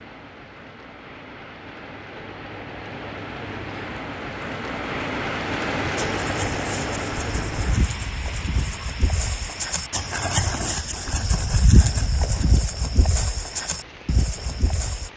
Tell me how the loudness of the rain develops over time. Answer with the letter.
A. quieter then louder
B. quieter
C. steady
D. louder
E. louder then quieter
E.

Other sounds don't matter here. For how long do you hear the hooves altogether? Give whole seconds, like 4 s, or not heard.
9 s.